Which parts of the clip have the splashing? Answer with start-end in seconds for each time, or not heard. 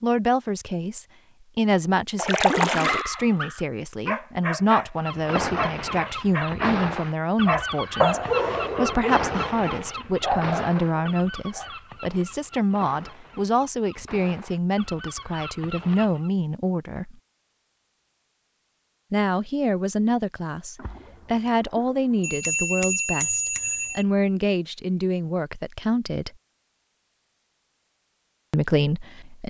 2.1-3.0, 20.8-22.4.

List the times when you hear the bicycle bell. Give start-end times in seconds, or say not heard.
22.2-24.1.